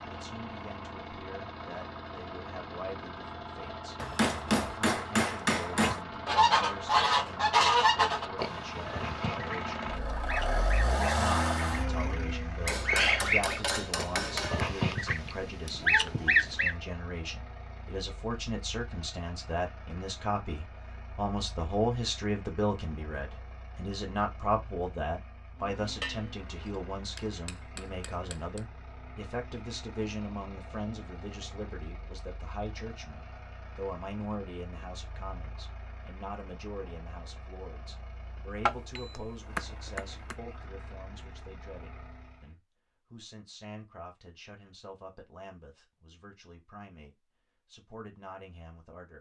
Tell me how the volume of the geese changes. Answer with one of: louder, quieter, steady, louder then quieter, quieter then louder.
quieter then louder.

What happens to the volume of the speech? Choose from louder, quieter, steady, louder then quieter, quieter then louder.
louder then quieter.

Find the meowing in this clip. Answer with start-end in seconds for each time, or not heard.
not heard.